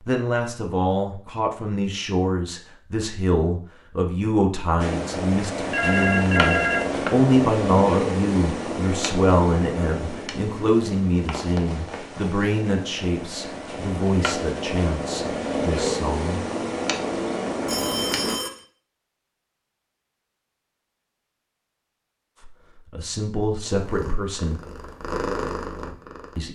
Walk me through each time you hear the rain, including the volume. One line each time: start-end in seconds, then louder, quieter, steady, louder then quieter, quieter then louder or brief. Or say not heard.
not heard.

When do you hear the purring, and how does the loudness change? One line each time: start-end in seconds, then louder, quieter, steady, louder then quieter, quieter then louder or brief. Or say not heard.
4.8-18.4 quieter then louder
23.6-26.5 brief.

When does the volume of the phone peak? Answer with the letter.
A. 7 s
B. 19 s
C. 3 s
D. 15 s
A.